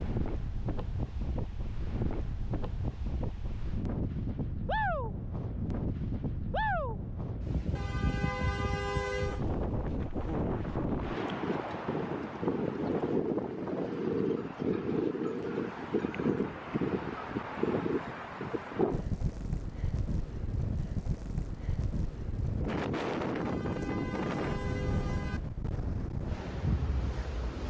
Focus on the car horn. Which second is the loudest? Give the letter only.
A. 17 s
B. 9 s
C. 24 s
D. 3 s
B.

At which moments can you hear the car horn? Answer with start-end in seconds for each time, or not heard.
7.8-9.4, 23.4-25.4.